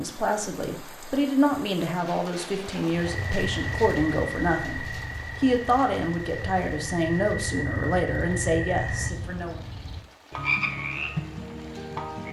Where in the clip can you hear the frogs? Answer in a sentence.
You can hear the frogs from 2.9 to 12.2 s.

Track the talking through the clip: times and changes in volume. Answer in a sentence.
You can hear the talking from 0.0 to 9.6 s, at a steady volume.